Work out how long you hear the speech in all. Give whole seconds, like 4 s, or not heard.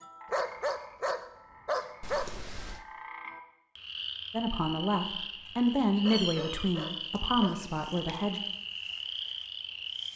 4 s.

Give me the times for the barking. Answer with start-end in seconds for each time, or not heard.
0.3-2.2, 6.0-7.5.